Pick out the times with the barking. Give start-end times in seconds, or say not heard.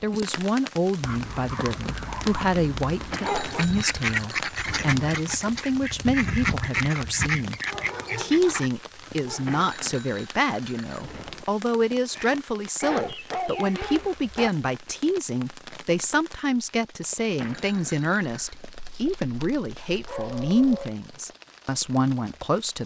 1.0-3.6, 7.7-9.6, 12.8-14.5, 18.5-20.9.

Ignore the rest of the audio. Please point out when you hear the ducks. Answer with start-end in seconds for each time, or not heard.
3.5-8.7.